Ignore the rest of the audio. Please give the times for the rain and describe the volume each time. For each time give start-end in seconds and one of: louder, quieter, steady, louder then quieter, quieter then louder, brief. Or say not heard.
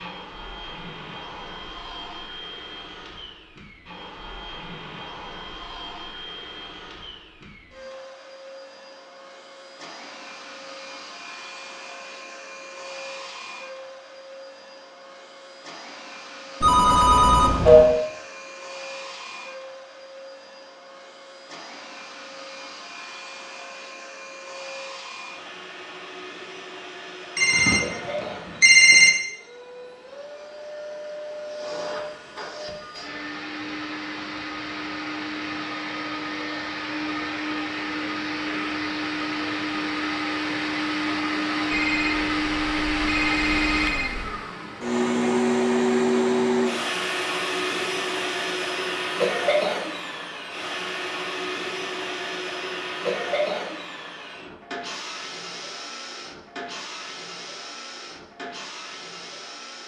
not heard.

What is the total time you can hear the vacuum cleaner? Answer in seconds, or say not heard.
60 s.